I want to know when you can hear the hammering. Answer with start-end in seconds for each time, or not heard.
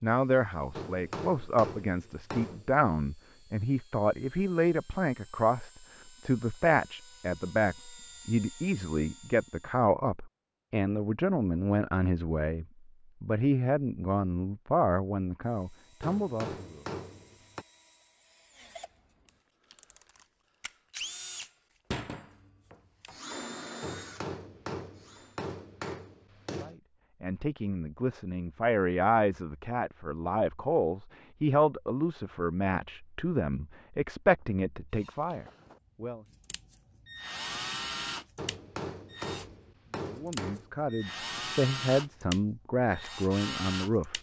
0.8-2.8, 16.0-17.6, 23.8-26.8, 38.4-40.7.